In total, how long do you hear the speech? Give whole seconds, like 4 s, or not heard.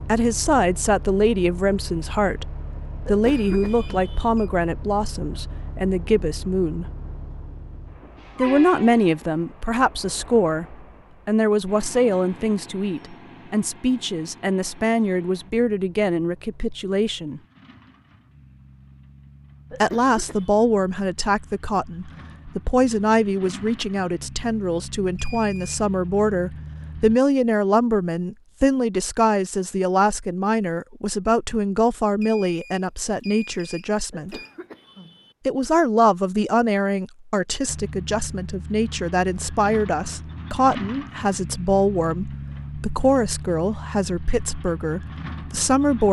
41 s.